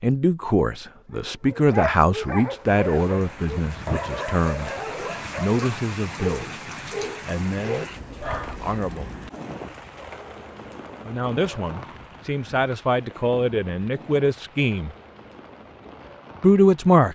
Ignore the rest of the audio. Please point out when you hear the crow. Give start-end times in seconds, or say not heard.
not heard.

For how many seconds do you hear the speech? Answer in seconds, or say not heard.
12 s.